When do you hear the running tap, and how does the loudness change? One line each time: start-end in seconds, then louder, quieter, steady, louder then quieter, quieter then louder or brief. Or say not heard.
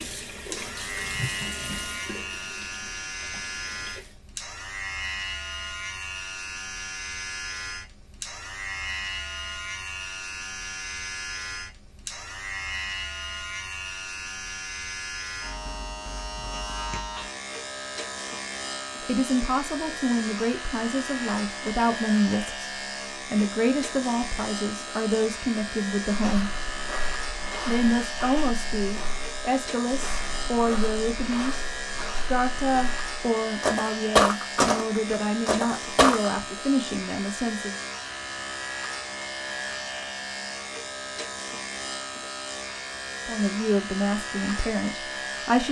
0.0-4.2 quieter.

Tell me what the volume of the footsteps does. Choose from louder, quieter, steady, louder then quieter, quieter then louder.
louder.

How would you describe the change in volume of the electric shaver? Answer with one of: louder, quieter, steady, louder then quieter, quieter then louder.
steady.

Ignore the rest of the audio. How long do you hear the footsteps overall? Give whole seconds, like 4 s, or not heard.
10 s.